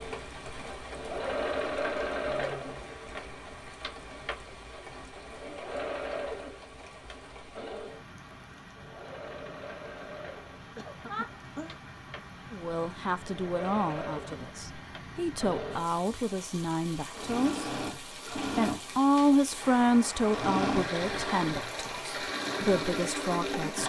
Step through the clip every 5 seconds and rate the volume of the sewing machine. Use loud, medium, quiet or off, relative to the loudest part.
loud, medium, medium, loud, loud.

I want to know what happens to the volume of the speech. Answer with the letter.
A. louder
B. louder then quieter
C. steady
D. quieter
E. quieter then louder
B.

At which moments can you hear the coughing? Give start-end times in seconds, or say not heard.
10.8-11.8.